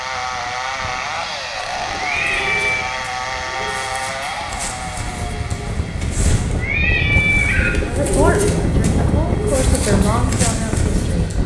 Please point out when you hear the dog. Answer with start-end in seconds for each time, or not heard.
not heard.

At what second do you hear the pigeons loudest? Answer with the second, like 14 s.
8 s.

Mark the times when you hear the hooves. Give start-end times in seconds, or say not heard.
not heard.